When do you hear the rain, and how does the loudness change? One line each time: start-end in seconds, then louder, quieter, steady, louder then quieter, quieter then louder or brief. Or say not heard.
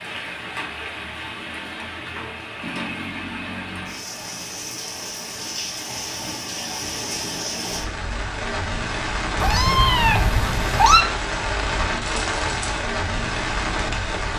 0.0-14.3 louder.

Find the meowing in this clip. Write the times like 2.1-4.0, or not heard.
9.4-11.1.